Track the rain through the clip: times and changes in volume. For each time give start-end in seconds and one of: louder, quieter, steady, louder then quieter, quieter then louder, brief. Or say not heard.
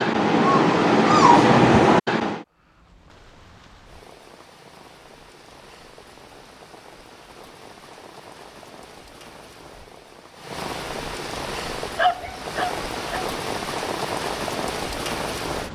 2.5-15.6 louder.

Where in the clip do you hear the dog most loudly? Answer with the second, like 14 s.
1 s.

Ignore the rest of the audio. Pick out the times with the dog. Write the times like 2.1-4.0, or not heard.
0.0-2.4, 11.8-13.2.